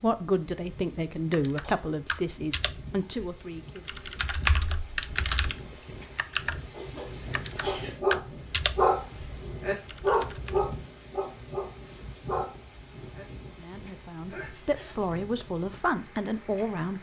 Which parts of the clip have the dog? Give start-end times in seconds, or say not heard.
7.7-13.2.